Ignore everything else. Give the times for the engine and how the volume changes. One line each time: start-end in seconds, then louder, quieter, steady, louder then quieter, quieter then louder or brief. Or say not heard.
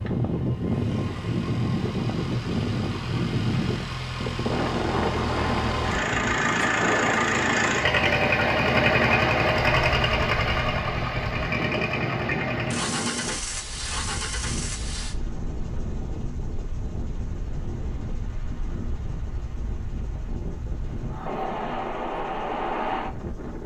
0.0-23.6 louder then quieter.